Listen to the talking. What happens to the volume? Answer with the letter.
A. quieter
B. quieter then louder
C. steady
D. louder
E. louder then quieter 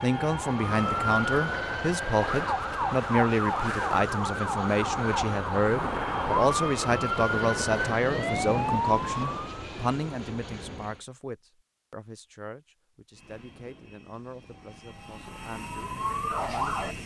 A.